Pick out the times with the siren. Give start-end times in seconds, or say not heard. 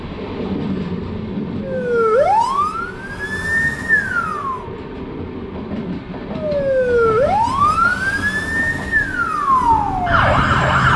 1.6-4.7, 6.3-10.9.